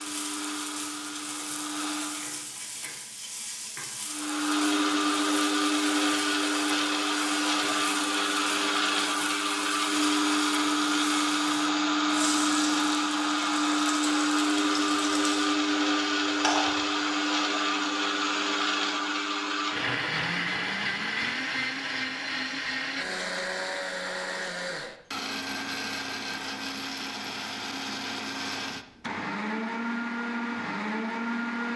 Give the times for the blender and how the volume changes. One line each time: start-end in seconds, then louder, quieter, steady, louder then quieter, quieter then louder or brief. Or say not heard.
0.0-2.5 brief
4.0-31.7 quieter.